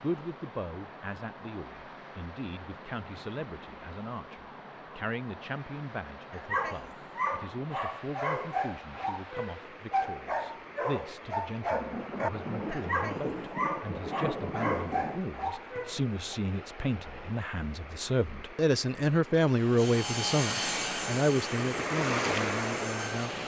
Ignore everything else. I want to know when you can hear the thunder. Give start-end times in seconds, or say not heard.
11.7-15.2.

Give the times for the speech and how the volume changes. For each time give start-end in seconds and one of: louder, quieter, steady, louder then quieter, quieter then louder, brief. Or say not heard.
0.0-23.4 louder.